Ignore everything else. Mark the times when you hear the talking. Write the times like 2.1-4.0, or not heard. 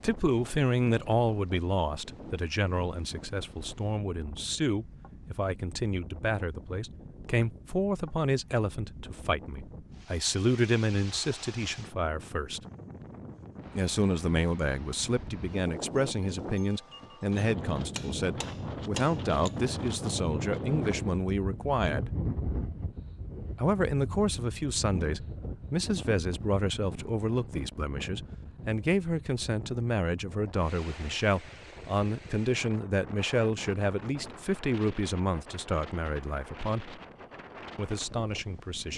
0.0-12.6, 13.8-22.1, 23.6-37.0, 37.8-38.9.